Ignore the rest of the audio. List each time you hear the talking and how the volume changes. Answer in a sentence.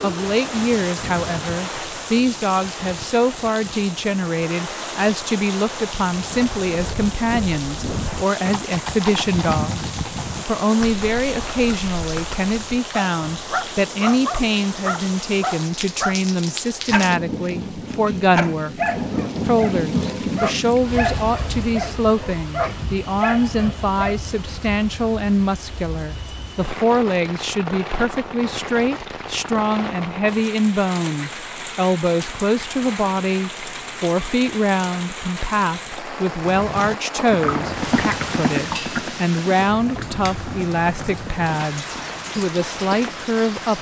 The talking can be heard from 0.0 to 43.7 s, at a steady volume.